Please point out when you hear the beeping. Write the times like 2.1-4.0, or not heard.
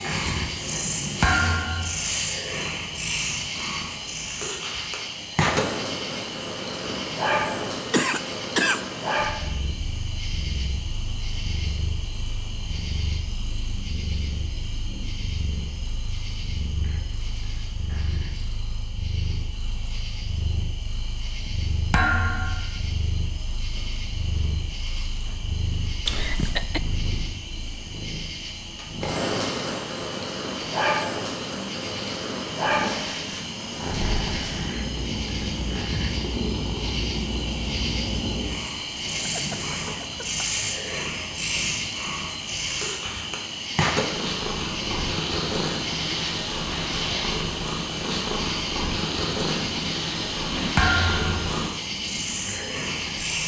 not heard.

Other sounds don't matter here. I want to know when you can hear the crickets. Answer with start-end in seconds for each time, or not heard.
0.0-53.4.